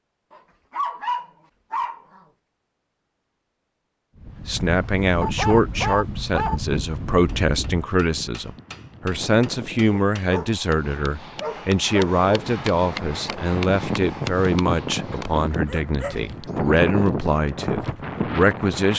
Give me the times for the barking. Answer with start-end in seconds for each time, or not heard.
0.3-2.2, 5.2-6.6, 9.9-12.4, 15.1-16.9.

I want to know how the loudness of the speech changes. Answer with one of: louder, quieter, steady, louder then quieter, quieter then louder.
steady.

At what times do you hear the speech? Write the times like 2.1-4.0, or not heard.
4.5-18.9.